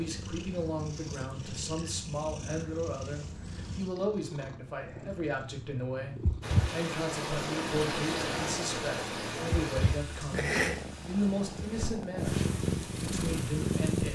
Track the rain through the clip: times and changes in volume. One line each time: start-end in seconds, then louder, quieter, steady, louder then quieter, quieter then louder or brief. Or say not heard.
6.4-14.1 quieter.